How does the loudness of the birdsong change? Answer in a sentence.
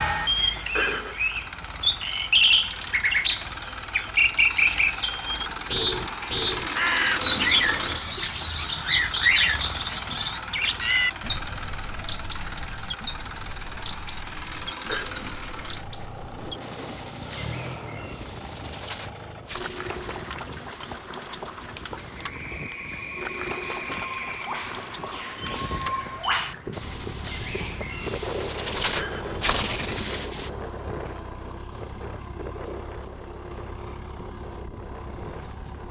The loudness of the birdsong goes down, then up.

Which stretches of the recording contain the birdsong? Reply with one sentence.
The birdsong can be heard from 0.0 to 30.5 s.